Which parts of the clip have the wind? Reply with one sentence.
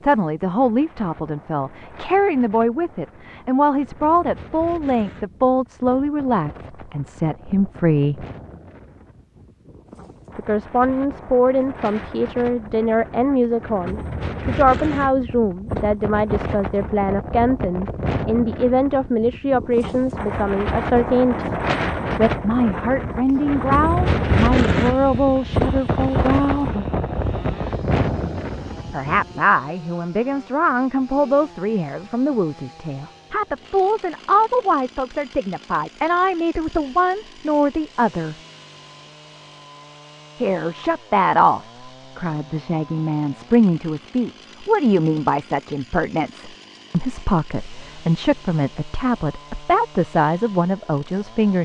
You can hear the wind from 0.0 to 29.4 s.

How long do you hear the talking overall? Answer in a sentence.
The talking can be heard for 45 seconds in total.